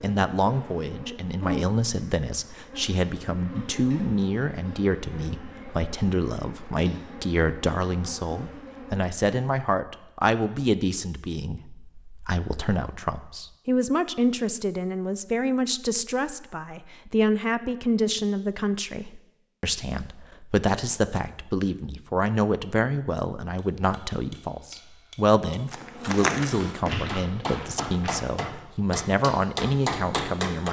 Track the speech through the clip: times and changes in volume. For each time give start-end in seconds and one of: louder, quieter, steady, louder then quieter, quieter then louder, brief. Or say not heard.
0.0-30.6 steady.